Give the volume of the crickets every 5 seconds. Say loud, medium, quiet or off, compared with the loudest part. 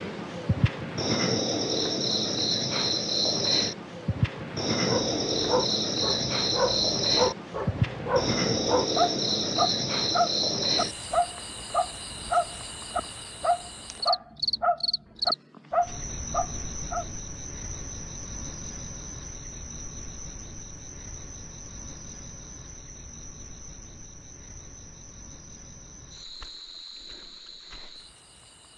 loud, loud, medium, medium, quiet, quiet.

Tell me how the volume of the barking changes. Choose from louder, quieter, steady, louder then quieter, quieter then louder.
steady.